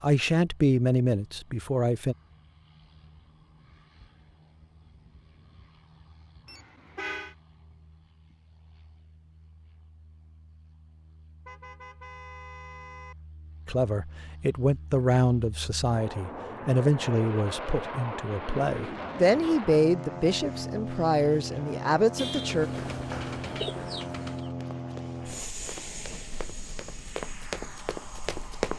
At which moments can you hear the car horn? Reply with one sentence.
You can hear the car horn from 6.5 to 7.3 s, from 11.4 to 13.2 s and from 22.1 to 22.6 s.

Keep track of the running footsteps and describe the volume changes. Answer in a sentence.
The loudness of the running footsteps goes down, then up.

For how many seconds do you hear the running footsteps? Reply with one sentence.
The running footsteps can be heard for 6 seconds in total.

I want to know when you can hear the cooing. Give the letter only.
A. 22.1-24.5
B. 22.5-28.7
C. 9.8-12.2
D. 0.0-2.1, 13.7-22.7
A.